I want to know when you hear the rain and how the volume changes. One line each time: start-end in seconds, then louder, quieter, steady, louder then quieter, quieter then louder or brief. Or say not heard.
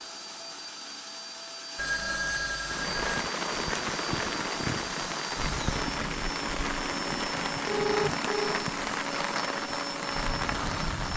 2.6-11.1 steady.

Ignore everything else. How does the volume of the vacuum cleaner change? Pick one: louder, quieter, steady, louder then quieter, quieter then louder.
steady.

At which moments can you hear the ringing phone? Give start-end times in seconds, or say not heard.
1.8-3.2, 7.7-8.7.